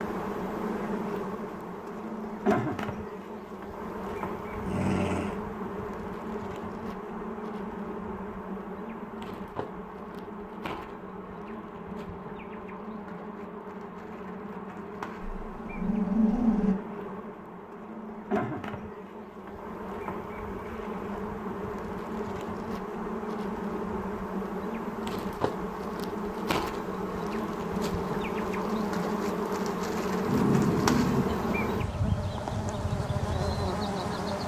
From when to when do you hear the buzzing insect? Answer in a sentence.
You can hear the buzzing insect from 0.0 to 34.4 s.